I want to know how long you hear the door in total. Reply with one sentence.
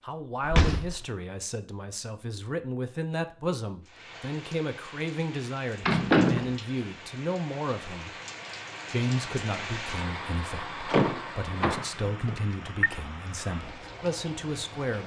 The door can be heard for 3 seconds in total.